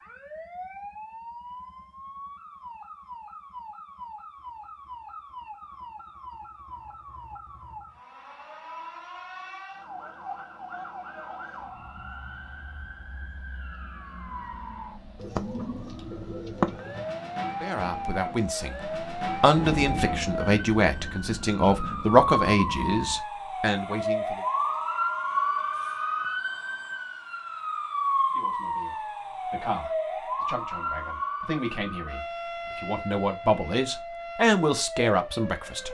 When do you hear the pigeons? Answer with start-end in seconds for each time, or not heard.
15.2-17.1.